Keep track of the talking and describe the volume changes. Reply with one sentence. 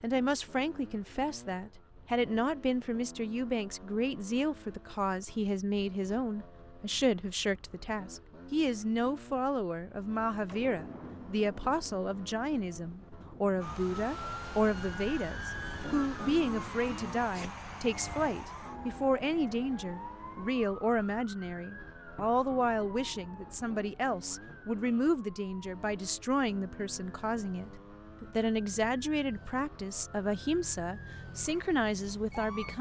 The volume of the talking stays about the same.